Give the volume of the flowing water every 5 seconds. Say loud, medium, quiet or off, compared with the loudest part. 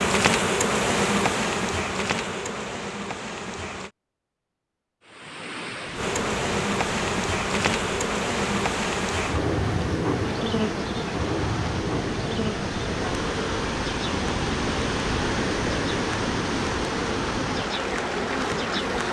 off, medium, loud, loud.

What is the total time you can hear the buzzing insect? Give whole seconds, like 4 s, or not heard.
17 s.